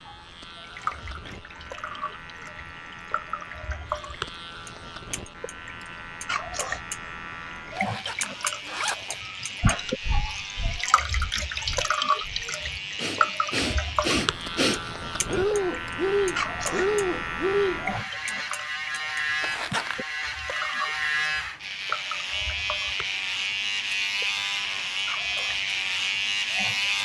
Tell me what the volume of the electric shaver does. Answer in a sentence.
The volume of the electric shaver goes up.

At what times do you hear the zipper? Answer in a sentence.
You can hear the zipper from 7.8 to 9.2 s and from 19.4 to 20.0 s.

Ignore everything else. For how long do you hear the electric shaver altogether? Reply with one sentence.
You can hear the electric shaver for 27 seconds altogether.